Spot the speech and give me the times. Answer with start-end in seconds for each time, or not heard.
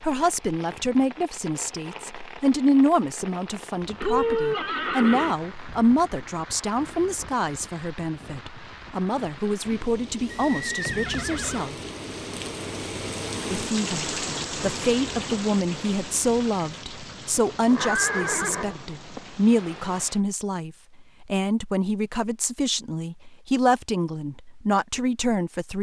0.0-11.8, 13.5-25.7.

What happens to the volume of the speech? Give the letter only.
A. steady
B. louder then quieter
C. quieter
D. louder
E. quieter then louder
A.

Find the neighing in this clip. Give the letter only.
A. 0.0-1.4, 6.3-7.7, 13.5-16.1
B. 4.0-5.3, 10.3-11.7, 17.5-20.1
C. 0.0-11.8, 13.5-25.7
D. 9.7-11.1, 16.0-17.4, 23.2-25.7
B.